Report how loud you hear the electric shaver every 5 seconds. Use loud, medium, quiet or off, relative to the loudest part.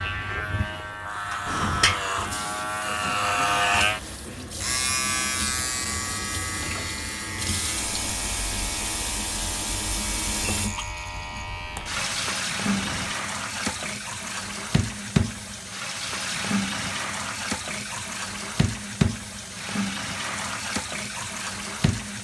loud, medium, medium, off, off.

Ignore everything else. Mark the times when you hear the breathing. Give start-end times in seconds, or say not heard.
1.4-1.9, 12.7-13.2.